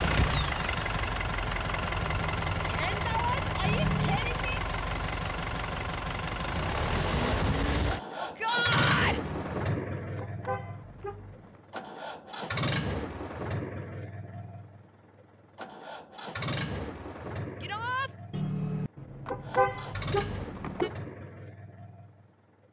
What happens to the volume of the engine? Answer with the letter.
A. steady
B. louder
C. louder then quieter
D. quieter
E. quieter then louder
D.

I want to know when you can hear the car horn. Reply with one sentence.
You can hear the car horn from 3.6 to 4.3 s, from 9.2 to 11.6 s and from 18.3 to 20.9 s.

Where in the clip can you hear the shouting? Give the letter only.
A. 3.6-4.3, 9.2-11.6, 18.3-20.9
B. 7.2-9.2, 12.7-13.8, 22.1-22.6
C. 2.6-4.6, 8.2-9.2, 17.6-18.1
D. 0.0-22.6
C.